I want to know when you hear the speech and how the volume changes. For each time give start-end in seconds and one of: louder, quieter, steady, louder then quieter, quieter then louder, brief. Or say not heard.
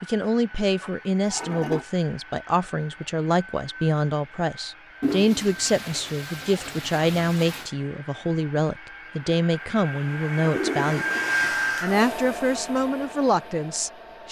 0.0-11.1 steady
11.8-14.2 brief.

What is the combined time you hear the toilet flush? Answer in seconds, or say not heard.
5 s.